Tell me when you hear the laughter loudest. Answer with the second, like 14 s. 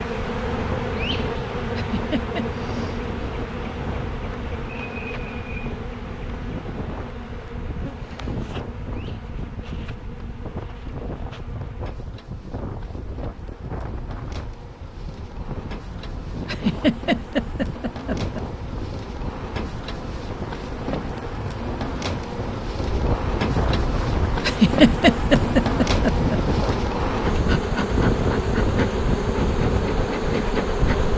25 s.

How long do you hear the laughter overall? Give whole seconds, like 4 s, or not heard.
5 s.